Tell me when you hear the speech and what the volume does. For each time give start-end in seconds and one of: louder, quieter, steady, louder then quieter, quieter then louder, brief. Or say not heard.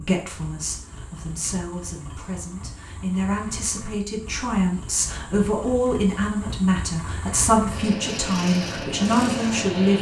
0.0-9.9 louder.